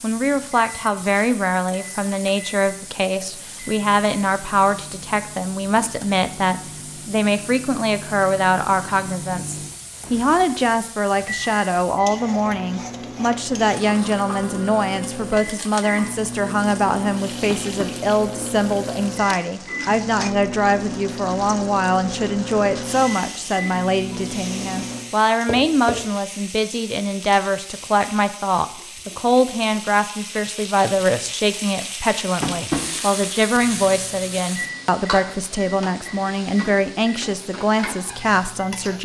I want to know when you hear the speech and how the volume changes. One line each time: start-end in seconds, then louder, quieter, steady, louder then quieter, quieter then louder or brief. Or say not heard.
0.0-38.9 steady.